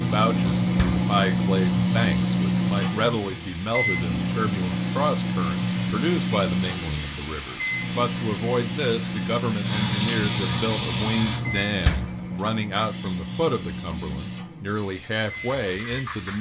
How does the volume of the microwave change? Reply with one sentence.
The loudness of the microwave goes down.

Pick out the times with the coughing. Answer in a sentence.
The coughing can't be heard in this clip.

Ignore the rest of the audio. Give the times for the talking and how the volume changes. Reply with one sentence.
You can hear the talking from 0.0 to 16.3 s, at a steady volume.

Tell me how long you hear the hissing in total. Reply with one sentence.
The hissing can be heard for 16 seconds in total.